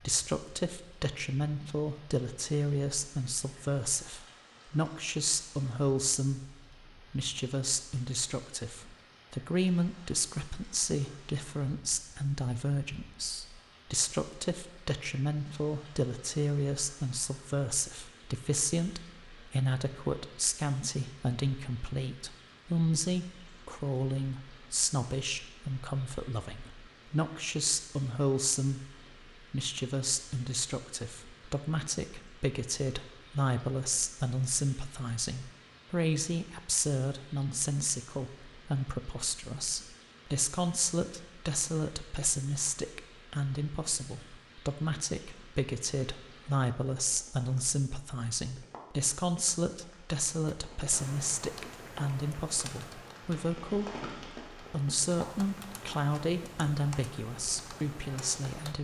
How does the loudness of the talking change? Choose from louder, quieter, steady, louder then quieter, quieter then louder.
steady.